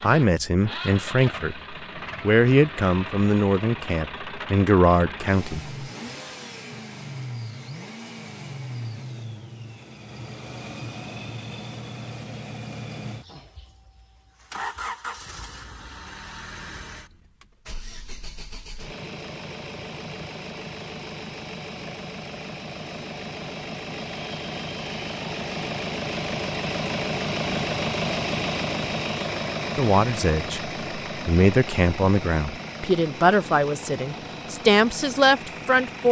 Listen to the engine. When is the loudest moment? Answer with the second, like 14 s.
28 s.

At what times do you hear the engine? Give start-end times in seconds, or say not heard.
0.0-36.0.